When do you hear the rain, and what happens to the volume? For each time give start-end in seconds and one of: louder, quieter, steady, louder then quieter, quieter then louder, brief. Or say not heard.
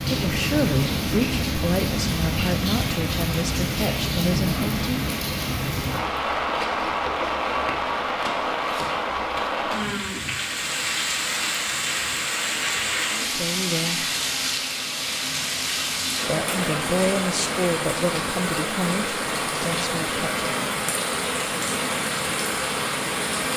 0.0-23.5 steady.